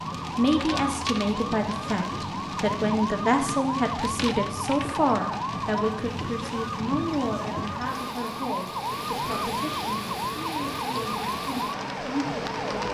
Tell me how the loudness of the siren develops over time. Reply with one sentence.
The volume of the siren stays about the same.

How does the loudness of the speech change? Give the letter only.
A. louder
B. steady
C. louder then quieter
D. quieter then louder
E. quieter
E.